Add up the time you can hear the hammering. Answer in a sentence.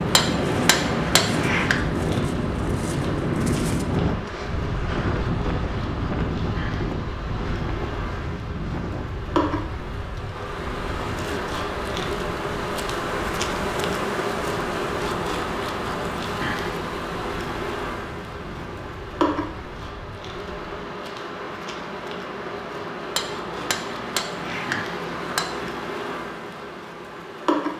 The hammering can be heard for 4 seconds in total.